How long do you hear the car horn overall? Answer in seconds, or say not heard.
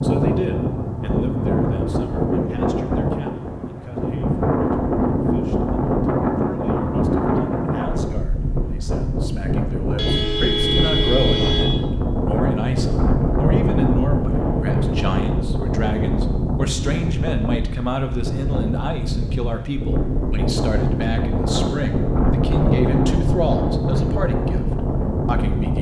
2 s.